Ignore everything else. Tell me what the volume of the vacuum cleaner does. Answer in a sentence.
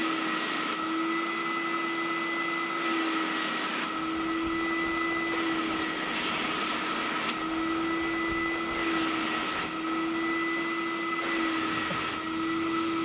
The volume of the vacuum cleaner stays about the same.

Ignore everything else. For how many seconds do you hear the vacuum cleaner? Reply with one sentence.
You can hear the vacuum cleaner for 13 seconds altogether.